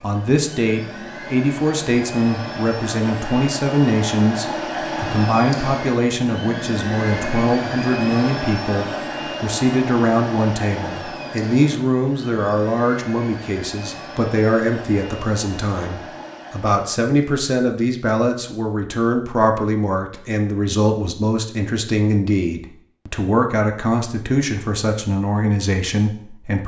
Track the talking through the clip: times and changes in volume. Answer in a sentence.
The talking can be heard from 0.0 to 26.6 s, at a steady volume.